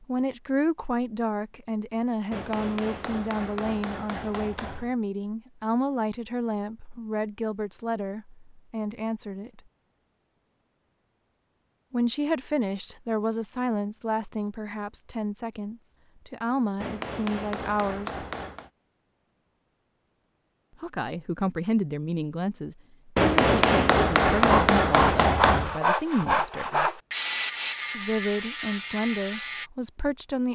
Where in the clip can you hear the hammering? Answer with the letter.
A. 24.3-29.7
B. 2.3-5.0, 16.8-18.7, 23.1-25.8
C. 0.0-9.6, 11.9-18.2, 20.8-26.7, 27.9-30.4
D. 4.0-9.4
B.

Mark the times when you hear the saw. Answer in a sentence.
The saw can be heard from 24.3 to 29.7 s.